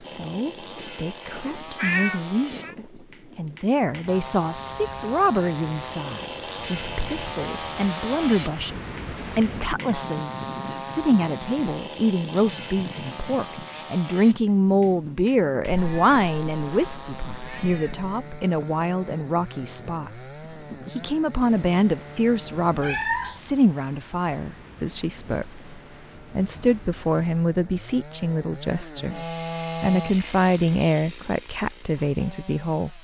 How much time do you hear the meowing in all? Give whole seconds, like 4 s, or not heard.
4 s.